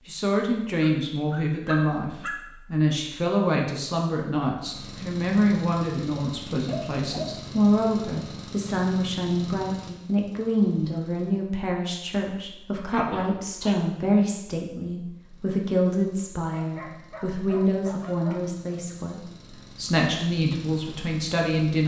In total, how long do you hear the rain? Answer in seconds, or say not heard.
not heard.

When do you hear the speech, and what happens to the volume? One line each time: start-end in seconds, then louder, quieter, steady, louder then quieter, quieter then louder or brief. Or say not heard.
0.1-21.8 steady.